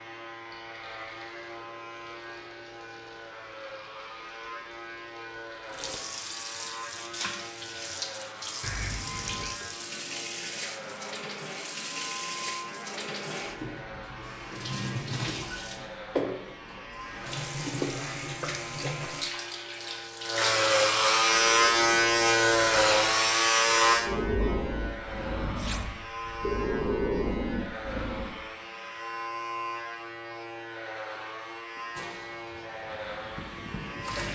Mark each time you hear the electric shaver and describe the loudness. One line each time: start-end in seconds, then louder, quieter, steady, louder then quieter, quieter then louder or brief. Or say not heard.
0.0-34.3 louder then quieter.